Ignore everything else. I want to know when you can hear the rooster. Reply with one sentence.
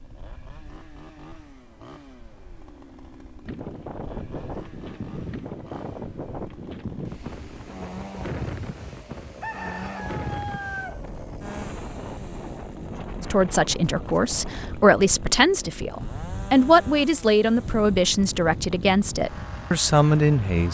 The rooster can be heard from 9.4 to 11.0 s.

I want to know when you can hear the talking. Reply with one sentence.
You can hear the talking from 13.2 to 20.6 s.